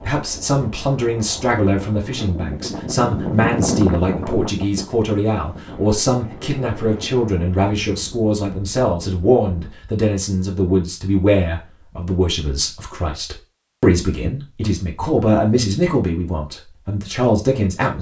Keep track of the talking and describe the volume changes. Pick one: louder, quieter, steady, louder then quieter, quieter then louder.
steady.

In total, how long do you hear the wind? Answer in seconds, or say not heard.
10 s.